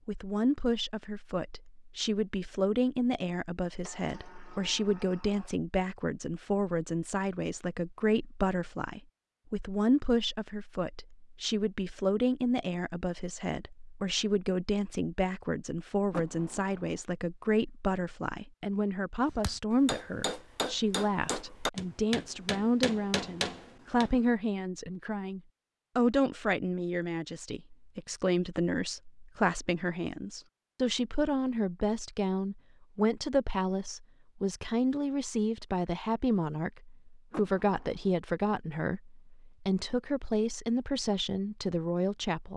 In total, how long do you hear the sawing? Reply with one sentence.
The sawing can't be heard in this clip.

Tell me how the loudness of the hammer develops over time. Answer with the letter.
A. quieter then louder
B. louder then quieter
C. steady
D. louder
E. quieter
C.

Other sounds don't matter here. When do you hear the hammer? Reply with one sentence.
You can hear the hammer from 19.4 to 24.3 s.